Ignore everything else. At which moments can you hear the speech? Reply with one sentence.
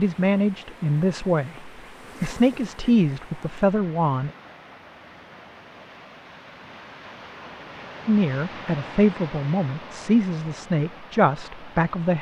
The speech can be heard from 0.0 to 4.3 s and from 8.1 to 12.1 s.